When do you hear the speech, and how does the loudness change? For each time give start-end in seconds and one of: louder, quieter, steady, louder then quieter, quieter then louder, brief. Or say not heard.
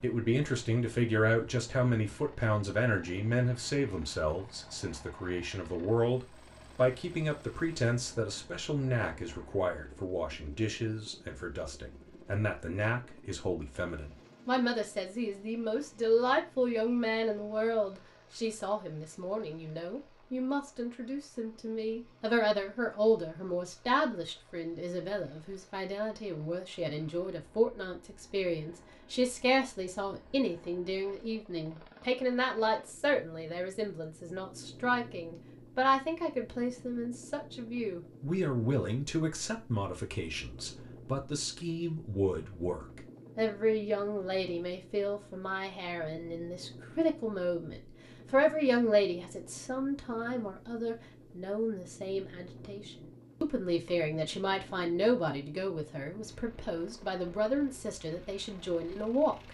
0.0-59.4 steady.